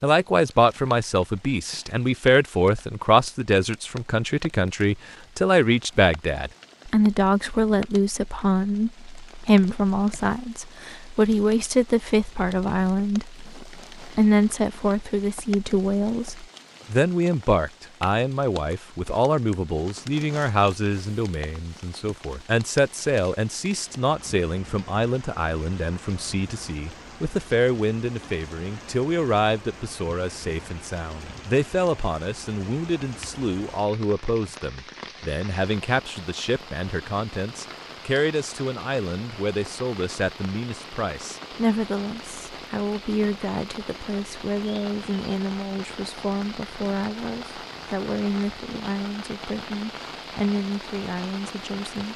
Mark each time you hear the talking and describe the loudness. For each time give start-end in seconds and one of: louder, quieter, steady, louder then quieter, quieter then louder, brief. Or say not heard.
0.0-52.1 quieter.